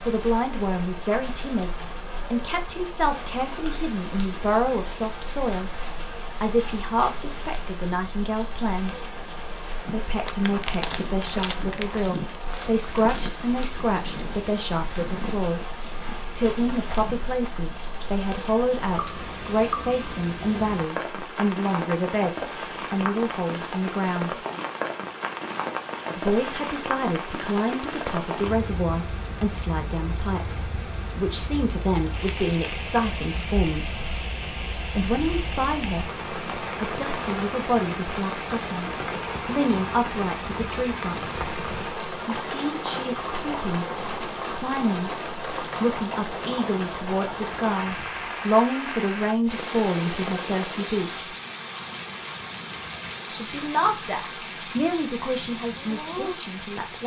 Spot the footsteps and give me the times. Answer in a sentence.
You can hear the footsteps from 9.8 to 17.7 s.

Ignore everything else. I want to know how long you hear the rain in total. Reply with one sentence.
You can hear the rain for 57 seconds altogether.